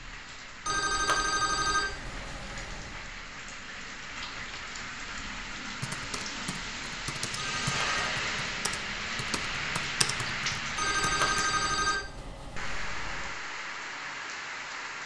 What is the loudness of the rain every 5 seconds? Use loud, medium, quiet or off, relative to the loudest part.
medium, loud, loud.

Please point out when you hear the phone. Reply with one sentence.
The phone can be heard from 0.7 to 3.0 s, from 7.3 to 8.1 s and from 10.8 to 13.3 s.